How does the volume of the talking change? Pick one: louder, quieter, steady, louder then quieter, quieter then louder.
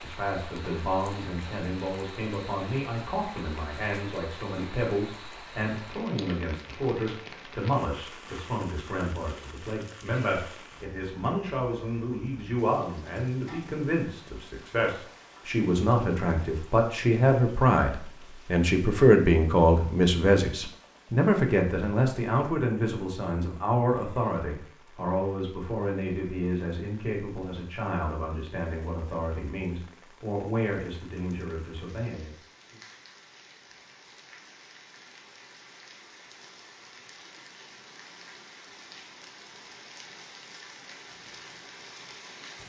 louder then quieter.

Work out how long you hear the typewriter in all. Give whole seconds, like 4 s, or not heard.
not heard.